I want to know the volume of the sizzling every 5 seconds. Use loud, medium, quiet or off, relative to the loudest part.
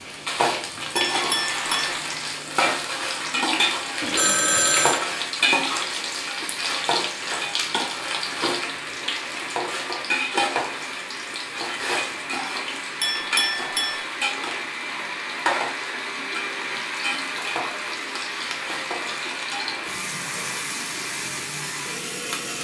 loud, loud, loud, medium, medium.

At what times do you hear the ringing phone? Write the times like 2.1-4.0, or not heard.
4.0-5.0.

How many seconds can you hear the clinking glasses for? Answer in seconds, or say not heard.
2 s.